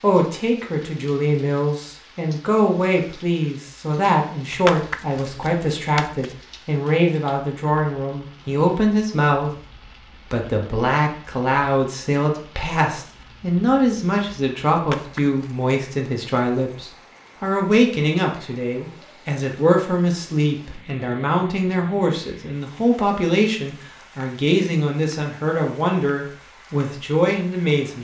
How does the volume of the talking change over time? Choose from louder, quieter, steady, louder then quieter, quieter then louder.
steady.